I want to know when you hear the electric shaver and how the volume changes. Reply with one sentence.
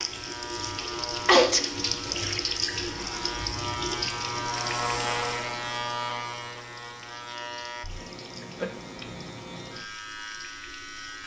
The electric shaver can be heard from 0.0 to 11.2 s, getting louder then quieter.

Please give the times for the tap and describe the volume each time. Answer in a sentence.
You can hear the tap from 0.0 to 11.2 s, getting quieter.